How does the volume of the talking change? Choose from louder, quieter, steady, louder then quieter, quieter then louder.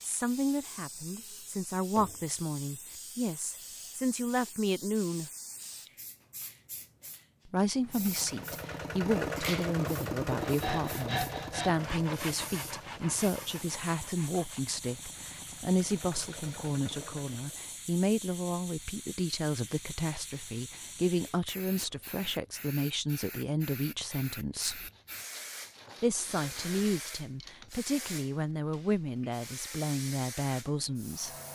steady.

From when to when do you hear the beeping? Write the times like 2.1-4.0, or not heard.
not heard.